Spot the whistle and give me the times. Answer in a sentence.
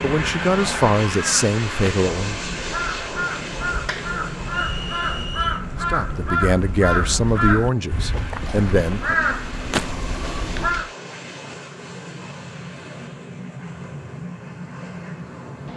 The whistle can be heard from 4.7 to 5.6 s.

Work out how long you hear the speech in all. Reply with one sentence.
The speech can be heard for 6 seconds in total.